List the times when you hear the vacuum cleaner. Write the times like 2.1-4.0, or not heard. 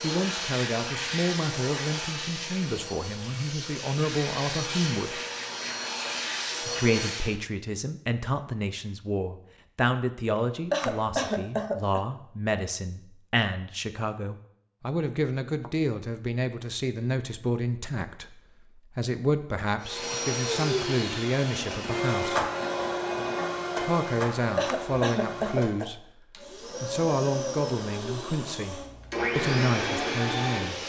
0.0-7.3, 19.8-30.8.